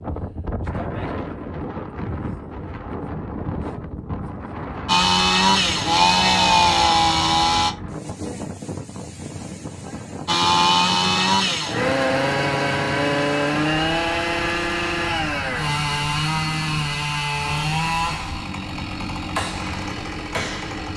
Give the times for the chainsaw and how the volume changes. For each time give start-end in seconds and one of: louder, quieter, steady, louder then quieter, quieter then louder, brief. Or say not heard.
4.8-7.7 brief
10.2-20.9 quieter.